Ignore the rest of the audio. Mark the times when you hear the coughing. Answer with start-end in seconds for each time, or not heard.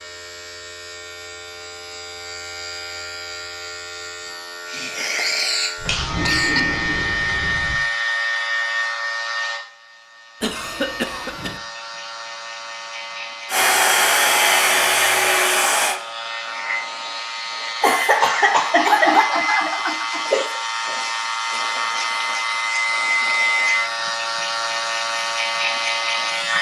4.7-6.7, 10.4-11.6, 17.8-20.6.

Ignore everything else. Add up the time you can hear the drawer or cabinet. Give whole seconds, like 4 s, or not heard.
2 s.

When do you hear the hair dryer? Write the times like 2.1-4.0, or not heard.
13.4-16.0.